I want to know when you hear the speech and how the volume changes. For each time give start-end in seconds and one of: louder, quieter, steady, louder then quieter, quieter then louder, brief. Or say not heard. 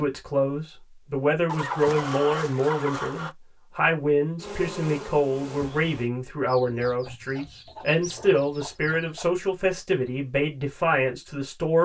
0.0-11.7 steady.